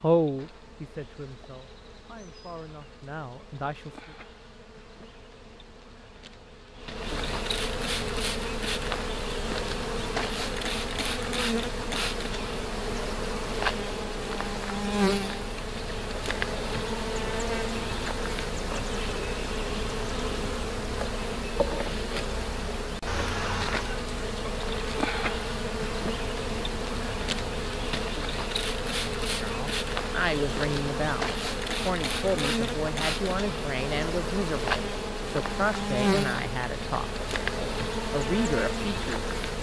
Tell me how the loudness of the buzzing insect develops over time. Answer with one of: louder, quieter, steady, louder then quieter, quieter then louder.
louder.